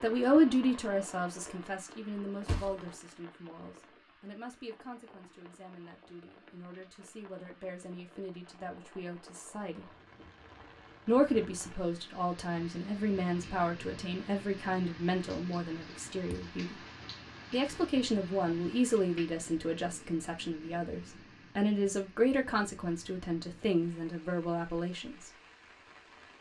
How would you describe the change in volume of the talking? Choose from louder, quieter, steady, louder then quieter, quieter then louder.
quieter then louder.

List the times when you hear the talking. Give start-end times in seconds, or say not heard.
0.0-9.8, 11.1-16.8, 17.5-25.3.